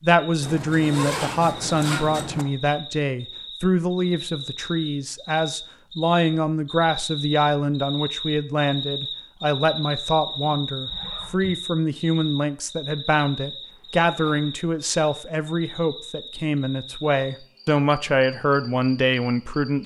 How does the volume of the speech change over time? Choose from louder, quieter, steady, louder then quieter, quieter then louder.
steady.